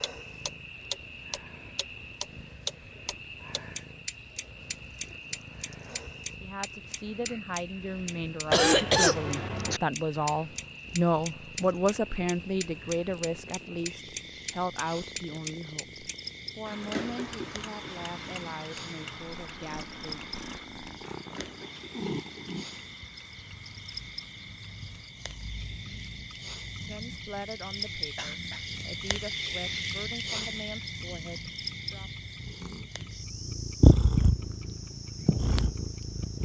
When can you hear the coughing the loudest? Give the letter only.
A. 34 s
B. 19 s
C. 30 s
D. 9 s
D.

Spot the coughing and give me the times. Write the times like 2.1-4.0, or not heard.
8.5-9.8, 28.1-28.6.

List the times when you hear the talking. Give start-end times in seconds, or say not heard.
6.4-20.2, 26.8-32.1.